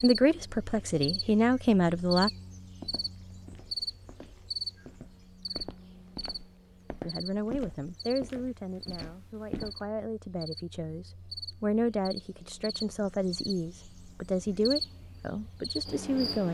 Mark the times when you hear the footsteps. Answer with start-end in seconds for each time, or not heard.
2.7-9.8.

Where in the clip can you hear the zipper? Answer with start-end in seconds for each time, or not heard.
not heard.